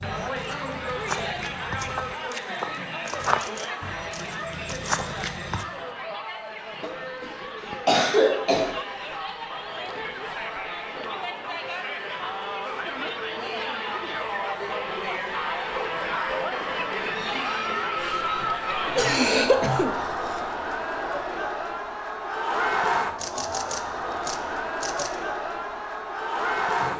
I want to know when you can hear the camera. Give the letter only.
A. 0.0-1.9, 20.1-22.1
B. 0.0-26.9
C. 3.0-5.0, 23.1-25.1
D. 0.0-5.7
C.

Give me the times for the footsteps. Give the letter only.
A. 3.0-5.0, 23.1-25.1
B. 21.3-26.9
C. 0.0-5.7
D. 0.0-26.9
C.